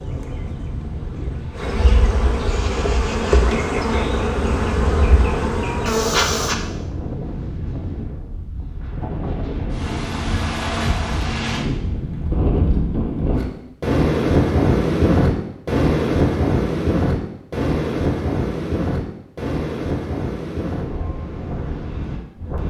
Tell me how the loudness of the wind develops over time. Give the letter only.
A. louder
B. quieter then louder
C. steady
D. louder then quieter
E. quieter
D.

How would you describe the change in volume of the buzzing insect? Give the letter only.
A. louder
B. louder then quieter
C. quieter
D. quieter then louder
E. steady
A.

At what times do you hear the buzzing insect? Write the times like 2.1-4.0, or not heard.
0.0-6.5.